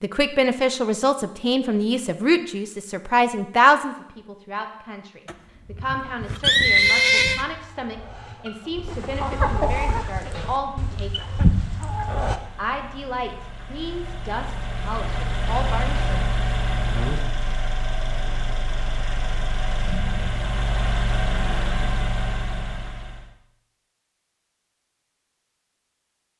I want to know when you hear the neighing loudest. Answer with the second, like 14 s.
7 s.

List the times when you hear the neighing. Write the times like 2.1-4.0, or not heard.
5.2-7.5.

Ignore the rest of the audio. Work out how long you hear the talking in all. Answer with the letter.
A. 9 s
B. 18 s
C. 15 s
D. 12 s
C.